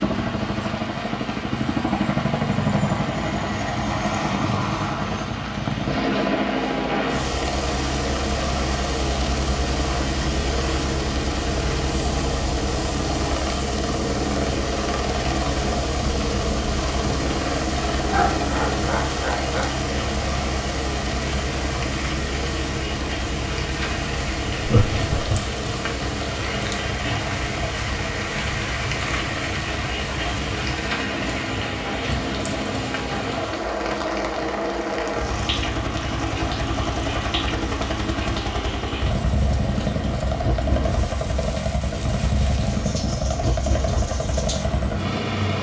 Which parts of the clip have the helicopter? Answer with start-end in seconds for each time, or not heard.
0.0-45.5.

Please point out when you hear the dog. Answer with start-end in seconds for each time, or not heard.
not heard.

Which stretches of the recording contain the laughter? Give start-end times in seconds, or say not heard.
18.1-19.8, 24.6-25.4.